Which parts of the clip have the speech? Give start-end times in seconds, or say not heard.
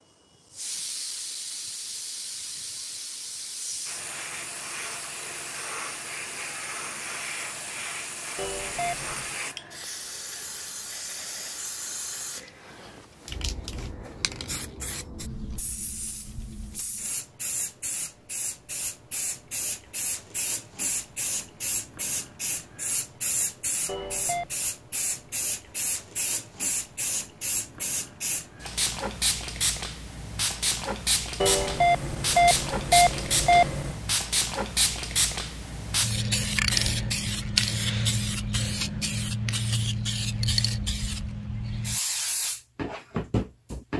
not heard.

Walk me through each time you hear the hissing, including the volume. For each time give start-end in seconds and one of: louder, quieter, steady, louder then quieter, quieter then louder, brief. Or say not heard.
0.3-43.9 louder.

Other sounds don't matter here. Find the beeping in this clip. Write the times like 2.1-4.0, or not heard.
8.3-9.3, 23.9-24.6, 31.4-34.0.